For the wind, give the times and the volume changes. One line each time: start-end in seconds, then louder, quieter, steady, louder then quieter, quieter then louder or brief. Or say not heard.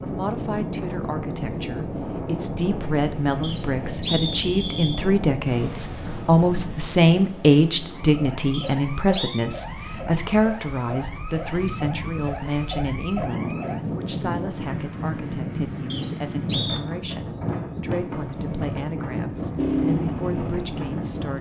0.0-21.3 quieter then louder.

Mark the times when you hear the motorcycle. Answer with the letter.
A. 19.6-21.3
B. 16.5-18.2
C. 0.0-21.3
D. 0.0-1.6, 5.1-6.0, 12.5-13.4
A.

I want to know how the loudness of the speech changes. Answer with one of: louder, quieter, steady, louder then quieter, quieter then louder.
louder then quieter.